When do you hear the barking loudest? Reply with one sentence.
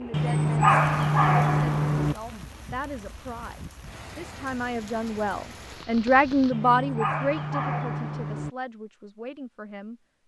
The loudest moment of the barking is at 1 second.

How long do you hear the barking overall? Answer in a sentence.
You can hear the barking for 4 seconds altogether.